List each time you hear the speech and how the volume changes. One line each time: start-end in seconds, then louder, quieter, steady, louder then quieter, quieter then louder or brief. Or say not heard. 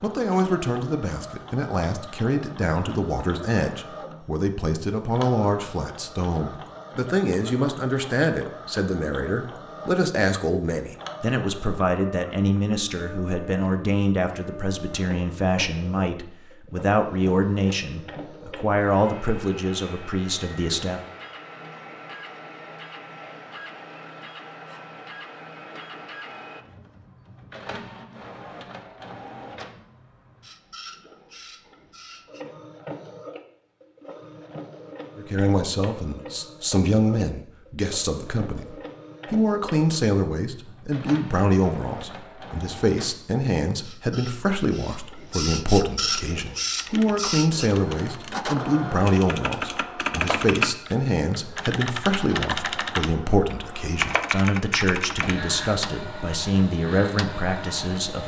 0.0-21.0 steady
35.1-58.2 steady.